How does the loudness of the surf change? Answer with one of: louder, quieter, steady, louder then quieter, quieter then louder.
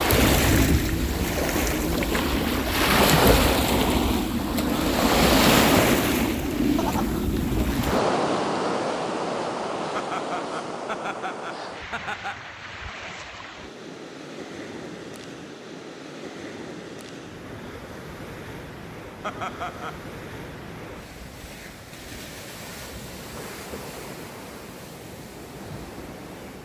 quieter.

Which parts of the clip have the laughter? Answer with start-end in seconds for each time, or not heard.
6.8-7.3, 9.9-12.5, 19.2-20.0.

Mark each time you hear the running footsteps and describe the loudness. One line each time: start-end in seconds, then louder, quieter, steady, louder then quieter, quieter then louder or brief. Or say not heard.
not heard.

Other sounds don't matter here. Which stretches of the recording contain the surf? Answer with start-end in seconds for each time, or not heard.
0.0-26.6.